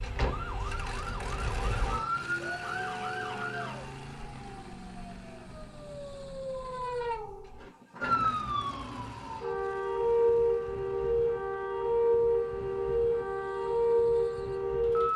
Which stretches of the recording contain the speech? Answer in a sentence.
You can't hear the speech here.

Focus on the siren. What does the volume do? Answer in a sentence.
The loudness of the siren goes down, then up.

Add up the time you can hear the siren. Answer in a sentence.
You can hear the siren for 15 seconds altogether.